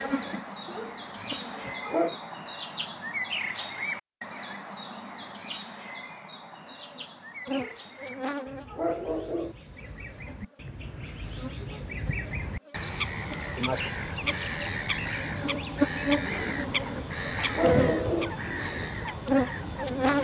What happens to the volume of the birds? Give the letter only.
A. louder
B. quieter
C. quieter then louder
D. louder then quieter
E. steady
C.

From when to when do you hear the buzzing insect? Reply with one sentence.
The buzzing insect can be heard from 0.0 to 1.9 s and from 6.7 to 20.1 s.